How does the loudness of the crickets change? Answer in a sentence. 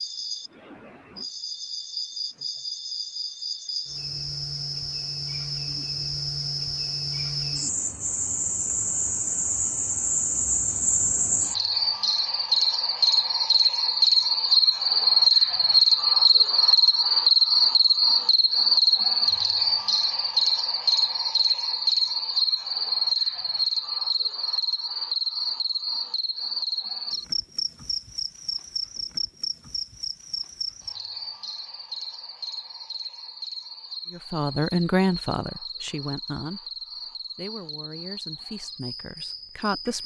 The loudness of the crickets goes up, then down.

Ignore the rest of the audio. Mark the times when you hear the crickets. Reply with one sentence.
The crickets can be heard from 0.0 to 40.0 s.